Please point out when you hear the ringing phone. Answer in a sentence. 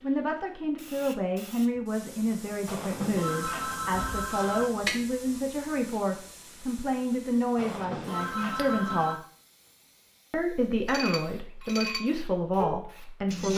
You can hear the ringing phone from 2.6 to 4.7 s and from 7.5 to 9.2 s.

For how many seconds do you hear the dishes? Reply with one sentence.
The dishes can be heard for 3 seconds in total.